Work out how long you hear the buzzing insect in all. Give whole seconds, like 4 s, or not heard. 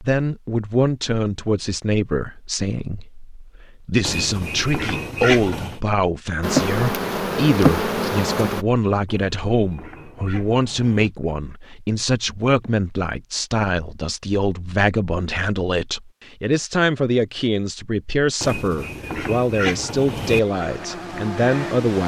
4 s.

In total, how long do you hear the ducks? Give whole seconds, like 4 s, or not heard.
6 s.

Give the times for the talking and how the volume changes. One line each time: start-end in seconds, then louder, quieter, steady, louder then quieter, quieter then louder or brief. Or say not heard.
0.0-22.0 steady.